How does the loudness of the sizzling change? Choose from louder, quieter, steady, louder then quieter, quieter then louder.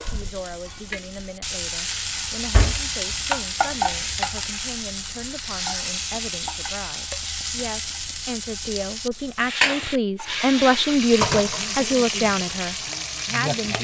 steady.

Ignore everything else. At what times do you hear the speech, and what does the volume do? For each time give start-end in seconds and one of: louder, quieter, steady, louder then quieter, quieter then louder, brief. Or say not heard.
0.1-13.8 louder.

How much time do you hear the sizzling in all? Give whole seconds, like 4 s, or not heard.
14 s.